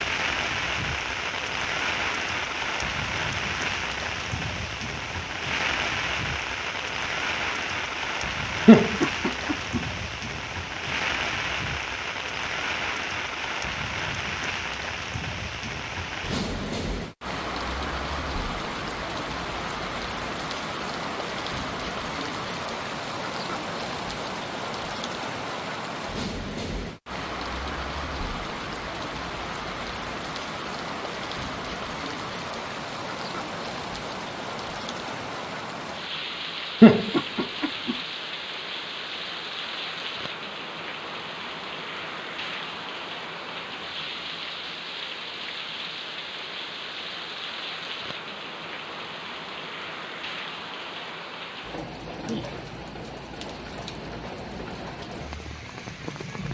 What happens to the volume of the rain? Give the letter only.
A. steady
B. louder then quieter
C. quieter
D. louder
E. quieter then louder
C.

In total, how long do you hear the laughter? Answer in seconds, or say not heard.
2 s.